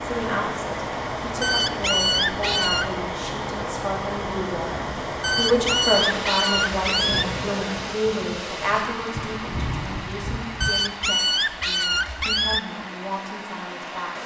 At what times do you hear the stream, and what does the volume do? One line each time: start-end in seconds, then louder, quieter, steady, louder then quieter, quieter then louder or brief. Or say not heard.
0.0-14.2 quieter.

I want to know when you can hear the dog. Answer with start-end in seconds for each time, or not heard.
1.4-3.0, 5.2-7.2, 10.6-12.6.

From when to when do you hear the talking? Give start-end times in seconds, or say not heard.
0.0-14.1.